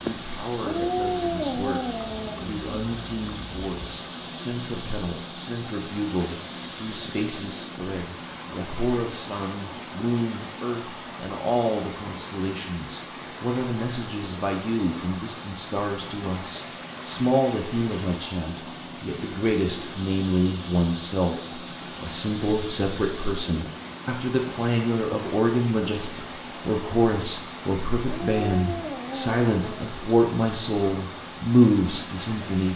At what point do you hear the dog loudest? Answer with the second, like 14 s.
1 s.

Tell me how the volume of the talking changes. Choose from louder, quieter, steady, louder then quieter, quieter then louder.
louder.